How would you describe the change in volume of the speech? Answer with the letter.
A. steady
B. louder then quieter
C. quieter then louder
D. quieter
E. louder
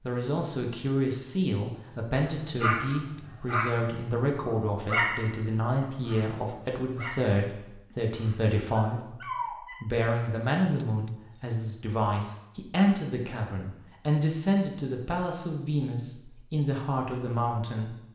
A.